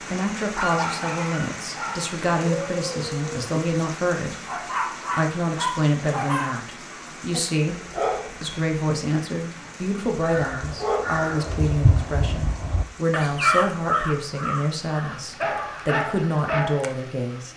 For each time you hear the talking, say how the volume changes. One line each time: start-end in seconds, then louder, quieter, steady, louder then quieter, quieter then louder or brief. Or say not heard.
0.1-17.5 steady.